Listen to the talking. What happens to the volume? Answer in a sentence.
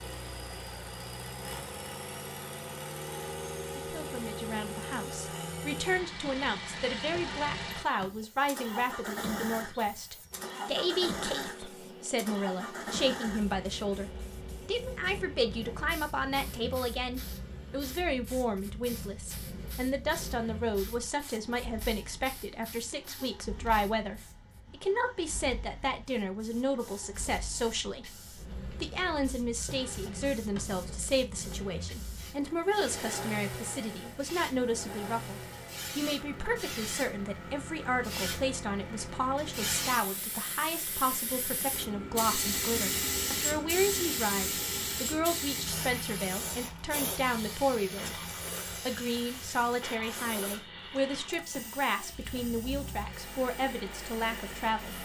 The volume of the talking stays about the same.